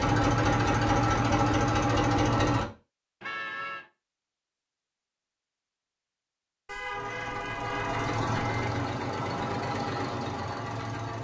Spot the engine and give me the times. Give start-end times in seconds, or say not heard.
0.0-2.7, 6.9-11.2.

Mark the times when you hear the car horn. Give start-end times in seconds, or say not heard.
3.2-3.9, 6.7-8.7.